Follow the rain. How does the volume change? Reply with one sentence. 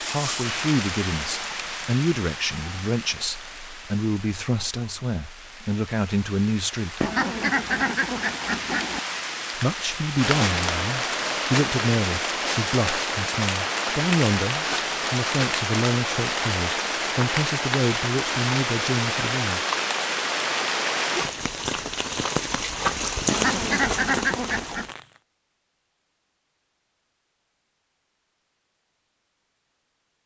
The volume of the rain goes up.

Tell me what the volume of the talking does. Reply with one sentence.
The volume of the talking stays about the same.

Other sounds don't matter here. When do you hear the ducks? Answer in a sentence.
The ducks can be heard from 7.0 to 9.0 s and from 23.2 to 24.9 s.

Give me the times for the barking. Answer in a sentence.
You can't hear the barking here.